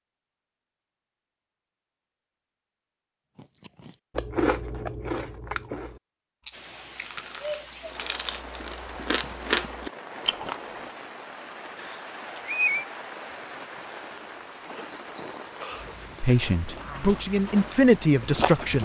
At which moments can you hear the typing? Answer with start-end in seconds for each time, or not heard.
not heard.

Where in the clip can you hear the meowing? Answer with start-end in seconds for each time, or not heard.
11.8-12.9.